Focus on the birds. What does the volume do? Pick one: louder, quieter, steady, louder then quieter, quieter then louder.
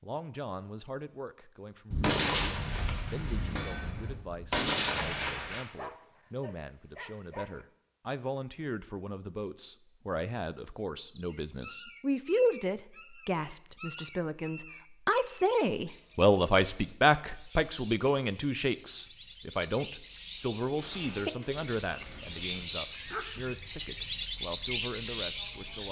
louder.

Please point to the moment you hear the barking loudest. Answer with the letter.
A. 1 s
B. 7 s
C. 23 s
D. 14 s
C.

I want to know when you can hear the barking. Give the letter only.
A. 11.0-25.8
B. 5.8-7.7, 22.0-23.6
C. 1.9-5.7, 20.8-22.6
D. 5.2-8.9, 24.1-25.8
B.